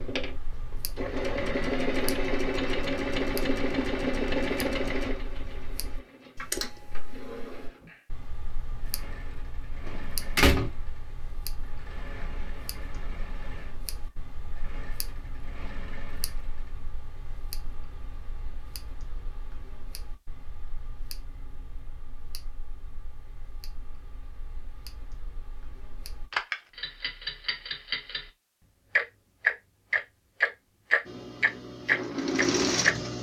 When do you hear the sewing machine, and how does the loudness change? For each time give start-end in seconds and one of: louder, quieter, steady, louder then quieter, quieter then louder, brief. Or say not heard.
0.0-16.9 quieter
31.1-33.1 brief.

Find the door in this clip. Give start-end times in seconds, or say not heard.
9.8-10.7.